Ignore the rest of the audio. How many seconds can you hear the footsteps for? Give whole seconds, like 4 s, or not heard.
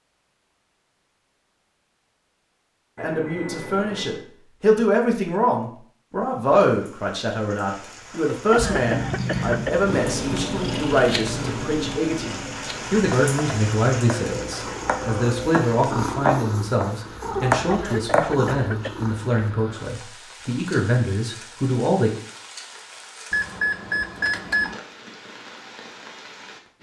not heard.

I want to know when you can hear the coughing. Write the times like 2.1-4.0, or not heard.
8.5-9.9, 17.7-19.1.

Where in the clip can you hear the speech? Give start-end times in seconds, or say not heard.
3.0-22.1.